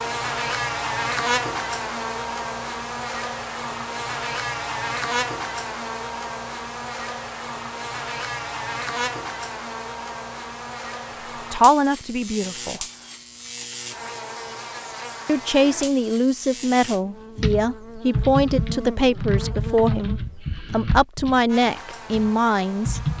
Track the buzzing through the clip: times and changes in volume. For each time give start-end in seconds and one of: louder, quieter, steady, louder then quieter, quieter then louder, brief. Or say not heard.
0.0-23.1 quieter.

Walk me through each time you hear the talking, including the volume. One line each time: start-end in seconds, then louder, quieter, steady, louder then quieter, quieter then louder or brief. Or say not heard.
11.5-12.8 brief
15.2-23.0 steady.